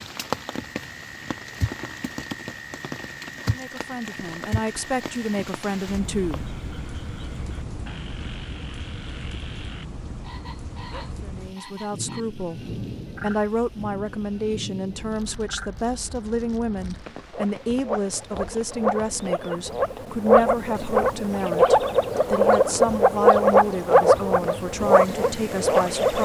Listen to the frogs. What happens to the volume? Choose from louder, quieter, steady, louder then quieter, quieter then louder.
louder.